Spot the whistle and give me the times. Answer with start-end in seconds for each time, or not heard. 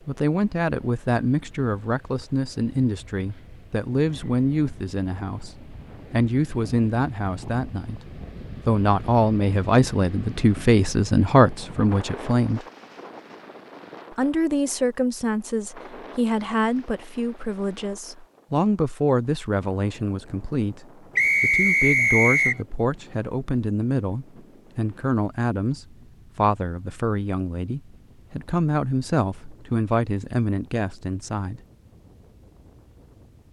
21.1-22.6.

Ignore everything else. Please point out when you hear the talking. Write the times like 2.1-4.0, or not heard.
0.1-12.6, 14.1-31.6.